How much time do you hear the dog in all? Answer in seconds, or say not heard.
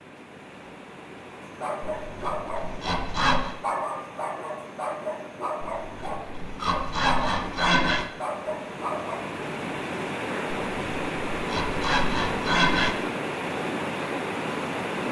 8 s.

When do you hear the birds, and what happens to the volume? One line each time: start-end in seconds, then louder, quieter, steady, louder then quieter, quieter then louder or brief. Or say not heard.
not heard.